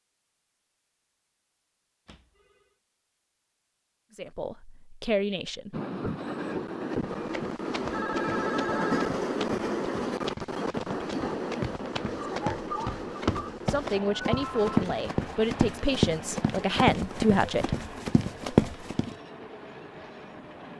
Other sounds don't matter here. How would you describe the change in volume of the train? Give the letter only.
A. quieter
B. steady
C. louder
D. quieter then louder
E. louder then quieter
A.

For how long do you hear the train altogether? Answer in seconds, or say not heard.
15 s.